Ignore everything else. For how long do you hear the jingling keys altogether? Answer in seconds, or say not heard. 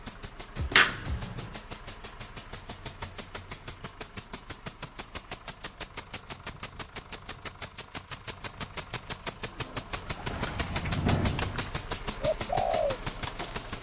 2 s.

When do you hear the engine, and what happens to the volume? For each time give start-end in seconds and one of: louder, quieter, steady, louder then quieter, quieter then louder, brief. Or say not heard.
0.0-13.7 louder.